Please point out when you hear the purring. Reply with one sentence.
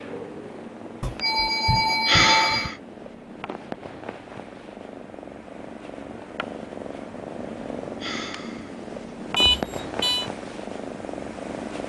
The purring can be heard from 0.0 to 11.8 s.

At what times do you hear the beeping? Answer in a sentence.
The beeping can be heard from 1.0 to 2.7 s and from 9.3 to 10.2 s.